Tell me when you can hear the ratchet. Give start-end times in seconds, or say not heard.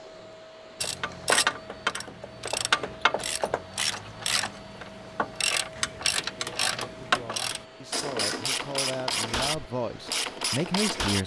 0.8-11.2.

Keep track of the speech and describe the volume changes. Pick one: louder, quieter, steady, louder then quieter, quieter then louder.
louder.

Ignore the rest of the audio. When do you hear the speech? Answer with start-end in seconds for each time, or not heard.
6.3-11.2.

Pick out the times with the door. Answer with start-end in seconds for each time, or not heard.
not heard.